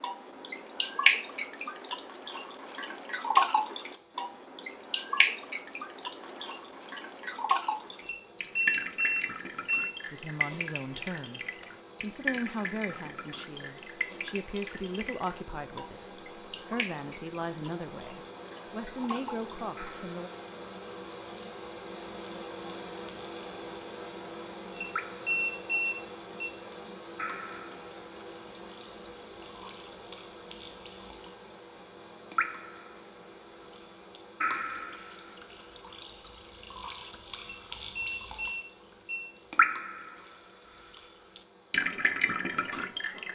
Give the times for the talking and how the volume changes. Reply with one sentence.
You can hear the talking from 10.1 to 20.3 s, at a steady volume.